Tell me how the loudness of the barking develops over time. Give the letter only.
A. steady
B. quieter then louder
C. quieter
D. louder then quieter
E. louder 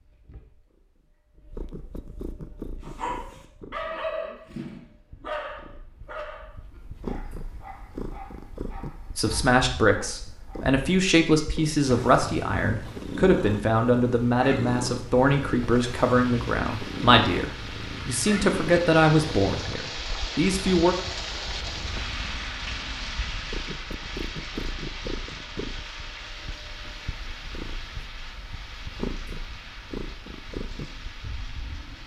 C.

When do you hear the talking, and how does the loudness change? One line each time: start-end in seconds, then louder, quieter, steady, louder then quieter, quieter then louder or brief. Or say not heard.
9.2-20.9 steady.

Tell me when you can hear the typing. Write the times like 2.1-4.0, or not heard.
not heard.